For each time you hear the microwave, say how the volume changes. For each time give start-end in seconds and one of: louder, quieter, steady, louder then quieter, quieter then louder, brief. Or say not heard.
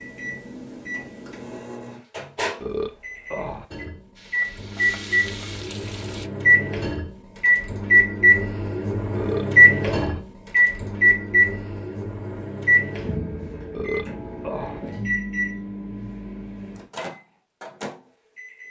0.0-18.6 louder then quieter.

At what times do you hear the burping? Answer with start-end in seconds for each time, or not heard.
2.6-3.6, 9.2-10.2, 13.7-14.8.